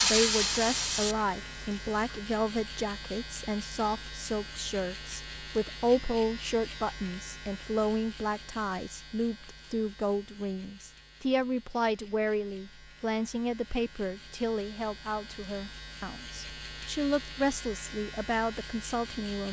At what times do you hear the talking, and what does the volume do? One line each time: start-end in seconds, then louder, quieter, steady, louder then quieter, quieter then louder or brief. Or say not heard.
0.0-19.4 steady.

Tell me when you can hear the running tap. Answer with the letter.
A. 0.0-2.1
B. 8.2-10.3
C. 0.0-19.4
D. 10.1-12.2
A.